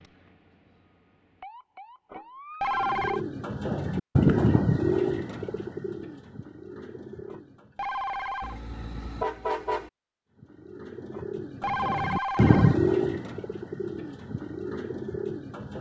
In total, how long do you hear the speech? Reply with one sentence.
The speech can't be heard in this clip.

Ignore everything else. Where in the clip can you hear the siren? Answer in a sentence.
The siren can be heard from 0.0 to 2.8 s.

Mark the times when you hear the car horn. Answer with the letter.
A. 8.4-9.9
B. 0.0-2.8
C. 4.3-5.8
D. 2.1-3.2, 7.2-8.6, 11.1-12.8
A.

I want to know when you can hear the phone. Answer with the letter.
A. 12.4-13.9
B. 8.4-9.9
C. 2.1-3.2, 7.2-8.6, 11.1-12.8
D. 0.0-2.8
C.